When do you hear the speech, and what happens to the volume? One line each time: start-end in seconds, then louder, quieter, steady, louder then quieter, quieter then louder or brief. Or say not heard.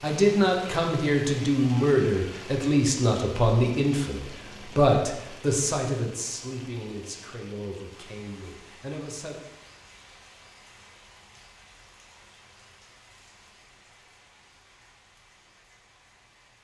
0.0-9.3 quieter.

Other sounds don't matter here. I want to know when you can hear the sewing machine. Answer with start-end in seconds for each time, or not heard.
not heard.